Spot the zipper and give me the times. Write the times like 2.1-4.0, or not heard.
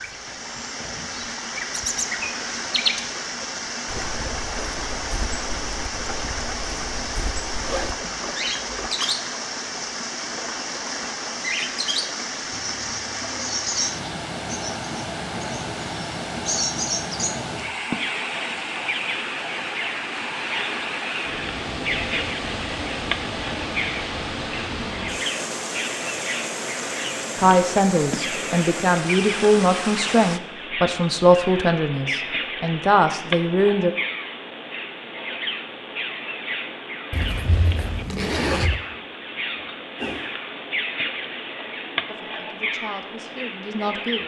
7.6-8.9, 37.1-38.8.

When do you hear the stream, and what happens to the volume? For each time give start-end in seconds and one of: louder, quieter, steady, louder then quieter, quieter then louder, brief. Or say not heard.
0.0-30.4 steady.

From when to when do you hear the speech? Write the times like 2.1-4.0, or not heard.
27.4-34.0, 42.0-44.2.